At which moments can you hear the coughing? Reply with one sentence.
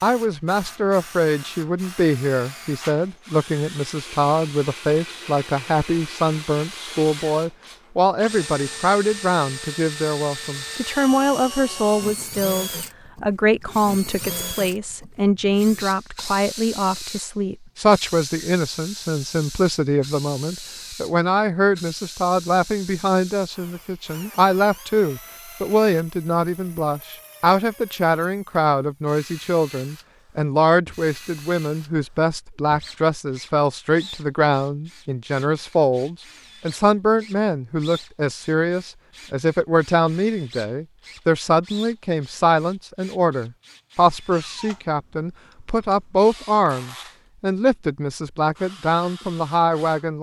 You can't hear the coughing here.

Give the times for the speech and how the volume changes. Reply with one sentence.
The speech can be heard from 0.0 to 50.1 s, at a steady volume.